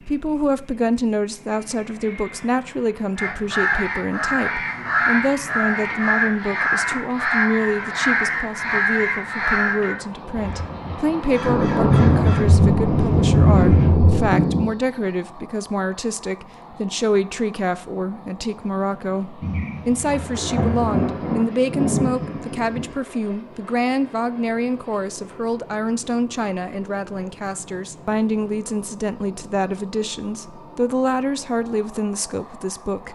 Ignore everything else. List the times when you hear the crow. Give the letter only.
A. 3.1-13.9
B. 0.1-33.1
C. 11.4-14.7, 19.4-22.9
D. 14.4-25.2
A.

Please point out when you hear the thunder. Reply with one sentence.
You can hear the thunder from 11.4 to 14.7 s and from 19.4 to 22.9 s.